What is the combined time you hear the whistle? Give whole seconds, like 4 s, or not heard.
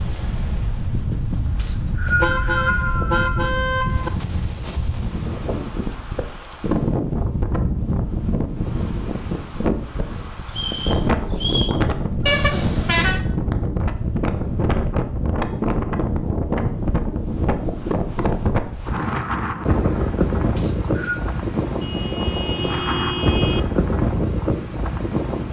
4 s.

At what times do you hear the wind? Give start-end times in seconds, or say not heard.
0.0-25.4.